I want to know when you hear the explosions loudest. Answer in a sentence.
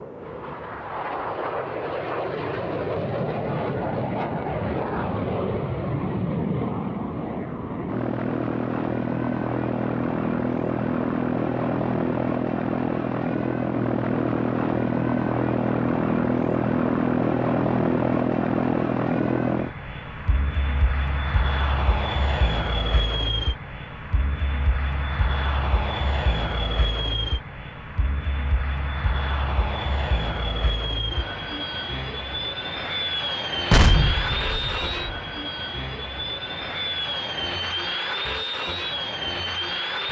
The loudest moment of the explosions is at 34 seconds.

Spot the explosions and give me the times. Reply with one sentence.
The explosions can be heard from 33.7 to 35.2 s.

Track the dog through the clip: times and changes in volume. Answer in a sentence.
You can't hear the dog here.